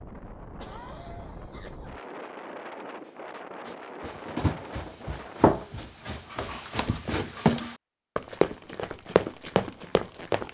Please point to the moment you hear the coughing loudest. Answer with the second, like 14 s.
1 s.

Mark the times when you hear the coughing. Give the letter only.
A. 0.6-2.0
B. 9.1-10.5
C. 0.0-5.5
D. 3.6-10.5
A.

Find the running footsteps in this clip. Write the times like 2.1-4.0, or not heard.
3.6-10.5.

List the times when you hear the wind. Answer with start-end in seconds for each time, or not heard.
0.0-5.5.